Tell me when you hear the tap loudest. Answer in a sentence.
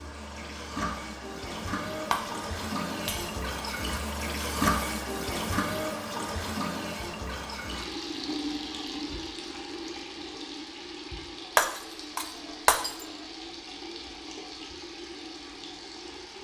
The volume of the tap peaks at 5 seconds.